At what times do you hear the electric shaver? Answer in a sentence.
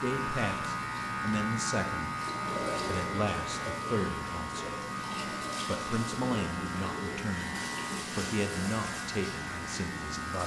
The electric shaver can be heard from 0.0 to 10.4 s.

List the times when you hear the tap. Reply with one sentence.
You can hear the tap from 0.0 to 10.4 s.